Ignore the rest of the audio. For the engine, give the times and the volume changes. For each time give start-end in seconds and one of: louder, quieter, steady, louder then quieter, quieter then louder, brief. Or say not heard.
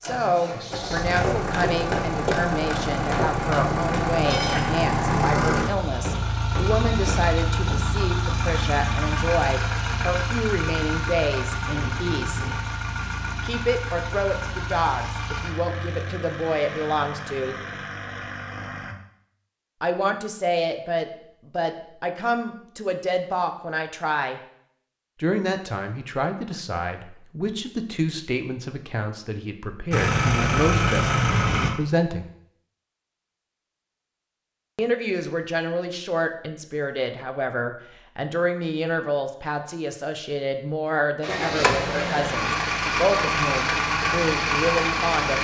0.0-18.9 quieter
29.9-31.7 brief
41.2-45.3 steady.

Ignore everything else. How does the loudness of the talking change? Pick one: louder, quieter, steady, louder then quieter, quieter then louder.
steady.